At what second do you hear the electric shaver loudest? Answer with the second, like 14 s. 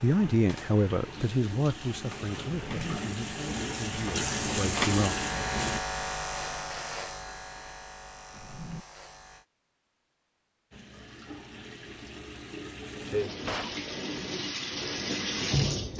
5 s.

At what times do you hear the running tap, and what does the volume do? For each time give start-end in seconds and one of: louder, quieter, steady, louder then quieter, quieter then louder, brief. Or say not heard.
0.0-5.8 louder
10.7-15.9 louder.